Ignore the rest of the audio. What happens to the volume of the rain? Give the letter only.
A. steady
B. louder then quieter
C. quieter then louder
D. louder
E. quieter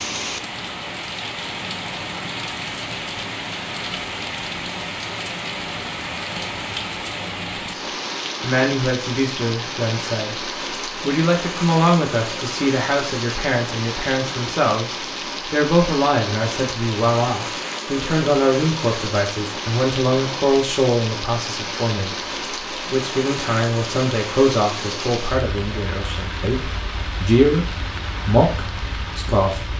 A.